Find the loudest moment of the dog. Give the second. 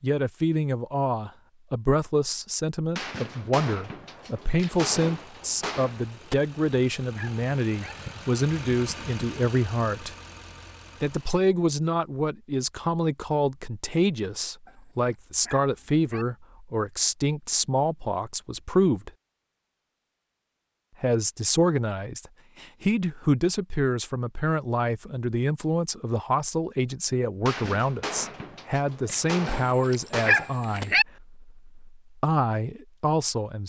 30 s.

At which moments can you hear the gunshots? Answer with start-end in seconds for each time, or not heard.
3.0-6.3, 27.4-30.9.